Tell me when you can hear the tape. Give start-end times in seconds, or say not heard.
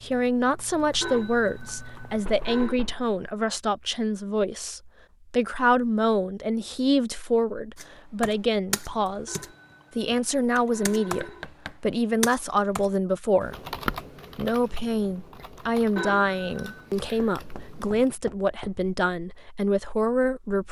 not heard.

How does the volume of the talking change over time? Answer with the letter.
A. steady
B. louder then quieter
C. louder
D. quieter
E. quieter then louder
A.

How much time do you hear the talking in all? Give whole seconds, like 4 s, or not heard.
20 s.